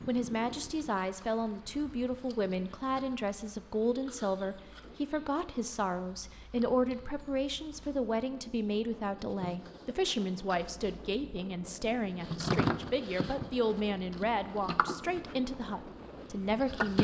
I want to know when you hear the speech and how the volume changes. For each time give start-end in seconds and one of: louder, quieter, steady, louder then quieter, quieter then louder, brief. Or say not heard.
0.1-17.0 steady.